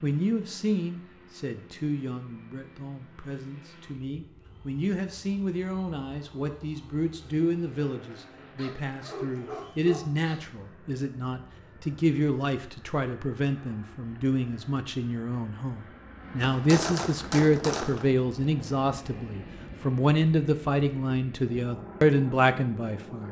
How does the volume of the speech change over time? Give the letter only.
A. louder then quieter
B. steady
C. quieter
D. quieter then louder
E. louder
E.